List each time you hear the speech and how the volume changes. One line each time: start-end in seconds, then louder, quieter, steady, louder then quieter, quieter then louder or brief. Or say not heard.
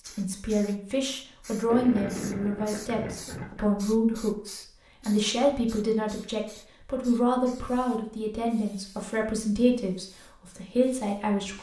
0.1-11.5 steady.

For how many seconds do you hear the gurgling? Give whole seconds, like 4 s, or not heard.
2 s.